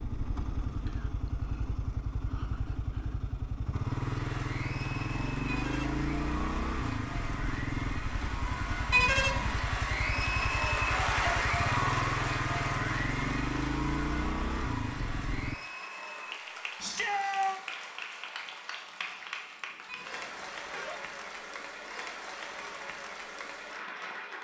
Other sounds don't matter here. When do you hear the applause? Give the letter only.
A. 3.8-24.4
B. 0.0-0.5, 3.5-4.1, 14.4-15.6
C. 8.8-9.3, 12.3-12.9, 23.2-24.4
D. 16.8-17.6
A.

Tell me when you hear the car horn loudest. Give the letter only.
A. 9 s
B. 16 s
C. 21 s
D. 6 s
A.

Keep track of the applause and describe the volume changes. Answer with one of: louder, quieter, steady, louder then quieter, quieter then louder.
louder then quieter.